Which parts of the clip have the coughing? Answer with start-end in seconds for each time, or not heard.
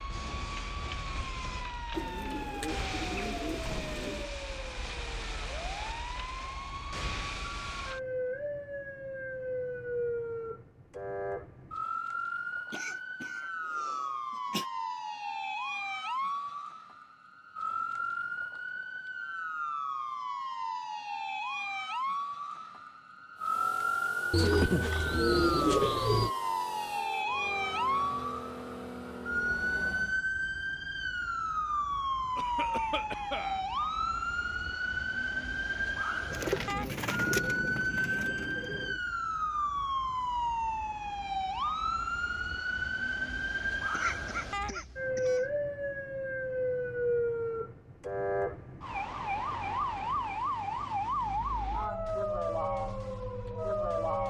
12.7-14.7, 32.4-33.6, 43.9-45.5.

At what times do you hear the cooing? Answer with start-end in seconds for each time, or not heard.
1.9-4.3, 24.3-26.3, 36.3-39.0.